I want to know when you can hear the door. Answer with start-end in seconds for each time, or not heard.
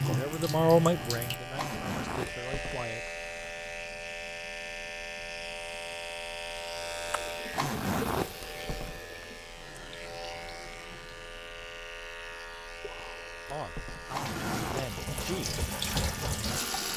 2.2-2.9, 8.4-9.2, 13.6-14.2.